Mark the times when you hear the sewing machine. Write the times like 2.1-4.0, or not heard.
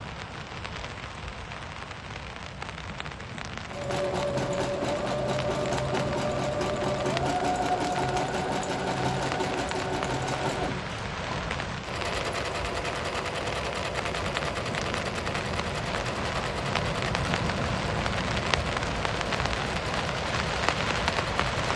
3.6-21.5.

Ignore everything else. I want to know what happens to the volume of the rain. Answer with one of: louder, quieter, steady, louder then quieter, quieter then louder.
louder.